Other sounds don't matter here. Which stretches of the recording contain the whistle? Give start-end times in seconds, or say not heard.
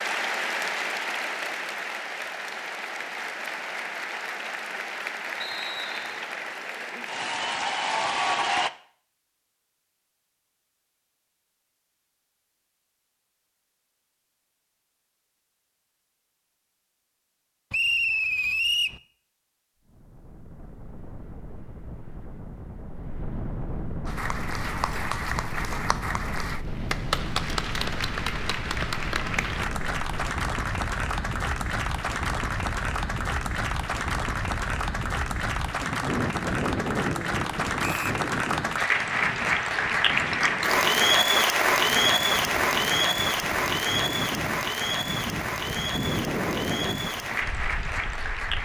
5.4-6.2, 17.7-19.0, 37.8-38.2.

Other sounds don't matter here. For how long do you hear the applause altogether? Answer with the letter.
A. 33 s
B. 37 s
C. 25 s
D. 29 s
A.